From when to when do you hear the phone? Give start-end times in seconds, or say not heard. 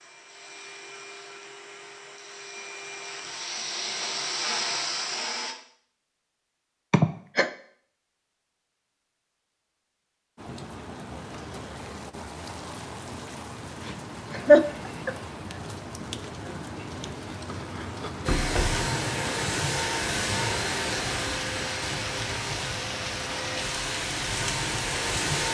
not heard.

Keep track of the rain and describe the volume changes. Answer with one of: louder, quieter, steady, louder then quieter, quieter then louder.
louder.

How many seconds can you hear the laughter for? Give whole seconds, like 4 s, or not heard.
2 s.